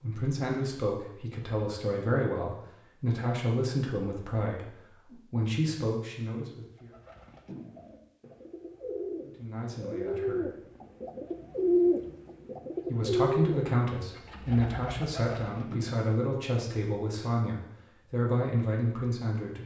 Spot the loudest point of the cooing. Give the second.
12 s.